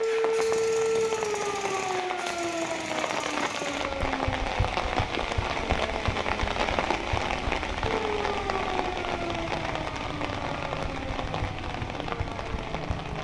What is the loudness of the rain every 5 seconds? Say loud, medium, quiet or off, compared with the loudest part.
loud, loud, medium.